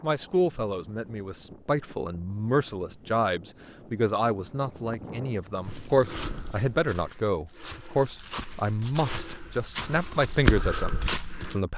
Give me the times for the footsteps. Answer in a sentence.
The footsteps can be heard from 5.6 to 11.6 s.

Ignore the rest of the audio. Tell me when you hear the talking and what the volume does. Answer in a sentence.
The talking can be heard from 0.0 to 11.7 s, at a steady volume.